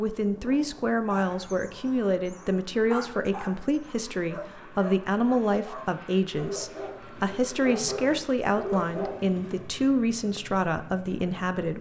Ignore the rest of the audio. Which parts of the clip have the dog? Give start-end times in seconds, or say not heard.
1.1-9.6.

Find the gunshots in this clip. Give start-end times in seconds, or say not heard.
not heard.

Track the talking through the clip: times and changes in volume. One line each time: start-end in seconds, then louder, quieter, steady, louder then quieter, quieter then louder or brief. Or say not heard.
0.0-11.7 steady.